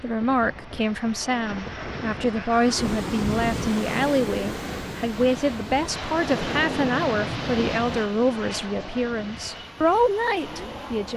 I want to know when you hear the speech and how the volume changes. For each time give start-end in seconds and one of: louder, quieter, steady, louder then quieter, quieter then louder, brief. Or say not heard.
0.0-11.1 steady.